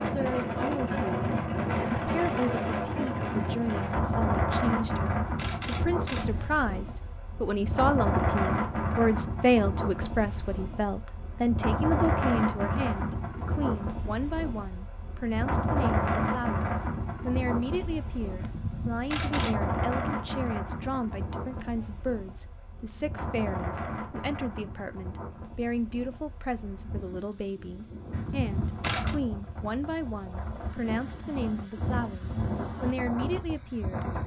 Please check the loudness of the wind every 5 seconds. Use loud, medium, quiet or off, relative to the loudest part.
loud, loud, loud, loud, medium, quiet, medium.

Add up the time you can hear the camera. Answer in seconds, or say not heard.
4 s.